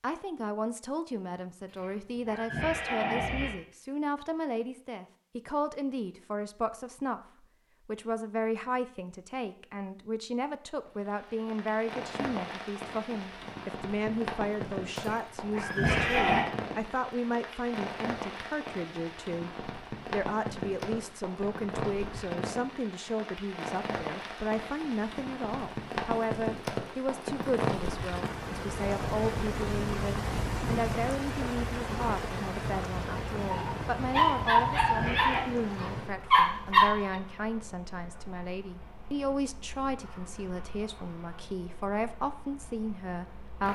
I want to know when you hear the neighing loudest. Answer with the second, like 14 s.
16 s.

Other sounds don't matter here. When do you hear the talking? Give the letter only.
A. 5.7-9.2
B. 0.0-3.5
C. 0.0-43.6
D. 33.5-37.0
C.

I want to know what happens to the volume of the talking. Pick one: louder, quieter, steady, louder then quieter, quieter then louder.
steady.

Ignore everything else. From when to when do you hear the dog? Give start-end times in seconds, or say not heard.
33.5-37.0.